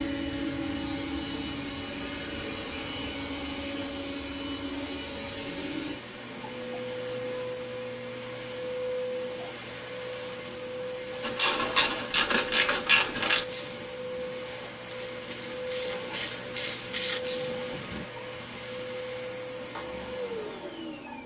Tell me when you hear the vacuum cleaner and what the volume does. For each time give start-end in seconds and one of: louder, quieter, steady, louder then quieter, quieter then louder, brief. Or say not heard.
0.0-21.2 steady.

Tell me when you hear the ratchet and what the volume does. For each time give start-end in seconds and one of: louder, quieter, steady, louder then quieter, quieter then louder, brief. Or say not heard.
11.2-18.1 quieter then louder.